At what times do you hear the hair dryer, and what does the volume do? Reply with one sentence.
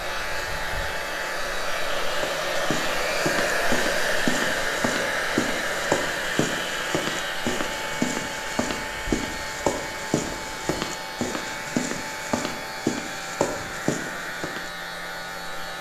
You can hear the hair dryer from 0.0 to 15.7 s, getting quieter.